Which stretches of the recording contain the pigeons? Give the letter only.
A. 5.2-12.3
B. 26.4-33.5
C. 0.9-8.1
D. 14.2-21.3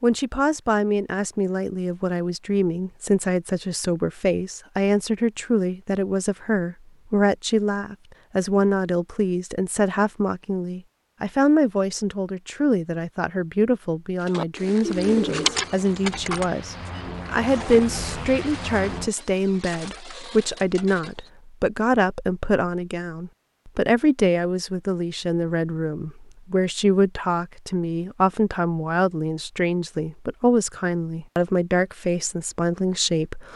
D.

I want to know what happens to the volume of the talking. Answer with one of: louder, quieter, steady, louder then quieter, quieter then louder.
steady.